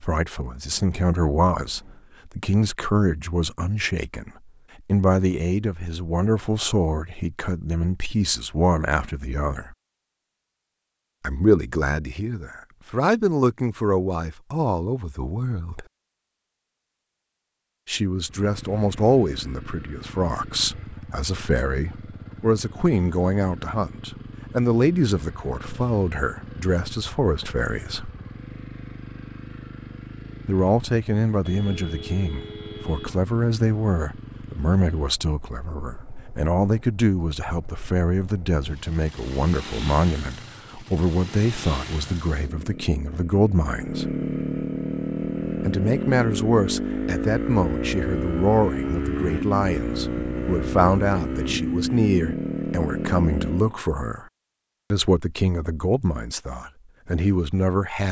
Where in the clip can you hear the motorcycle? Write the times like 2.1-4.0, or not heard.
18.1-53.8.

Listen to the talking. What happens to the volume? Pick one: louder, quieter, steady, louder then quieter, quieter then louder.
steady.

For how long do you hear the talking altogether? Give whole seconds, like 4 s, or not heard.
50 s.